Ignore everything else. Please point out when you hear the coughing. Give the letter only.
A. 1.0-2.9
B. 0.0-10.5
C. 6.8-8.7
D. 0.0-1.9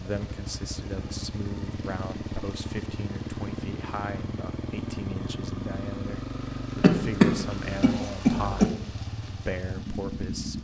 C.